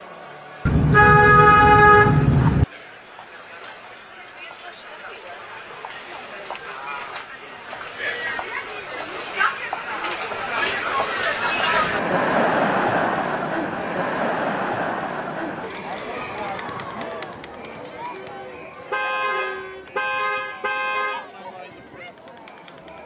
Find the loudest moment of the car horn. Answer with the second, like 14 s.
2 s.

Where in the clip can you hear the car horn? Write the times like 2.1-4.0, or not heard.
0.7-2.6, 18.9-21.3.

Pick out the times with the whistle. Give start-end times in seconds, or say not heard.
not heard.